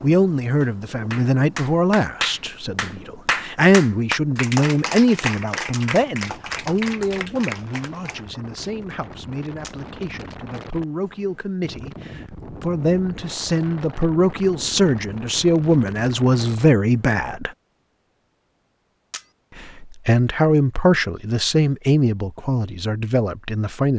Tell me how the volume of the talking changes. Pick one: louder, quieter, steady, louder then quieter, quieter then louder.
quieter then louder.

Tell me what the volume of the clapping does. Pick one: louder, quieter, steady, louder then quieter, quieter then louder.
quieter.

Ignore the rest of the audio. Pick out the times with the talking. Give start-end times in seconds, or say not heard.
0.0-17.5, 19.8-23.9.